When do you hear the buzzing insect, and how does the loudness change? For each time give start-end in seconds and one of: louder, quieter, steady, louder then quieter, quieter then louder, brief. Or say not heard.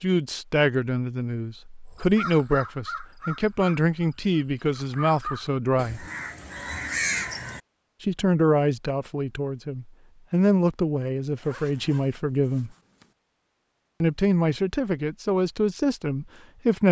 not heard.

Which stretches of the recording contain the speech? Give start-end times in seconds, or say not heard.
0.0-6.0, 8.0-12.7, 14.0-16.8.